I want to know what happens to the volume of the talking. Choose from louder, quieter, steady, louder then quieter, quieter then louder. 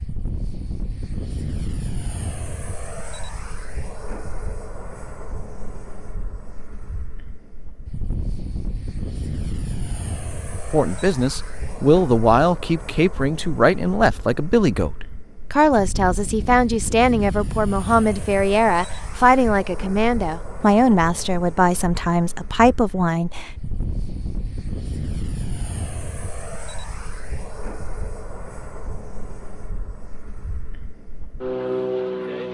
steady.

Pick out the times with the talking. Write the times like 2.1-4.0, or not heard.
10.7-23.5.